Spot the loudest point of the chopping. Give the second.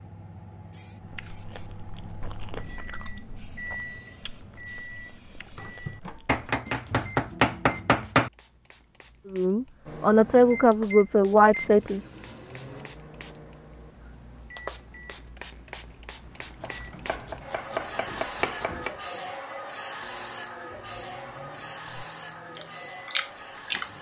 8 s.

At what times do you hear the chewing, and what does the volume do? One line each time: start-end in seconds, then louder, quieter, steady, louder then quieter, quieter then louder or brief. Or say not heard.
1.0-6.4 louder then quieter
21.8-23.9 brief.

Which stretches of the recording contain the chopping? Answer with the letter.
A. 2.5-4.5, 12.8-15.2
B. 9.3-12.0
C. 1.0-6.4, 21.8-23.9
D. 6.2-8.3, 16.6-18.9
D.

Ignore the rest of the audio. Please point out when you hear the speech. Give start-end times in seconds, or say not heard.
9.3-12.0.